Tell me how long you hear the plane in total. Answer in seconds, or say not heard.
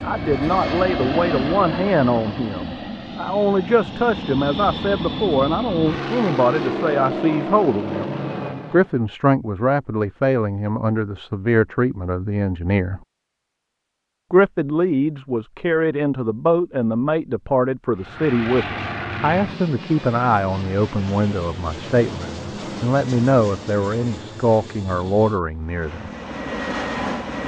18 s.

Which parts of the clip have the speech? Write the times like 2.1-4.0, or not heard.
0.0-8.1, 8.7-13.0, 14.3-26.1.